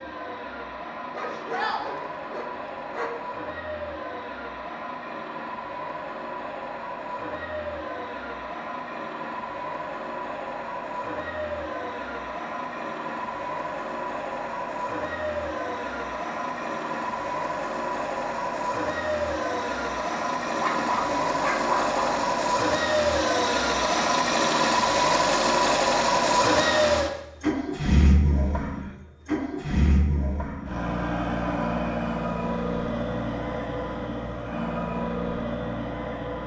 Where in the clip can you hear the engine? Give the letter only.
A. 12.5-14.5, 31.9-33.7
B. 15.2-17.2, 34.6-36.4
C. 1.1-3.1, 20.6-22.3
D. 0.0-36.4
D.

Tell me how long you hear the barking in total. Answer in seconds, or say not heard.
4 s.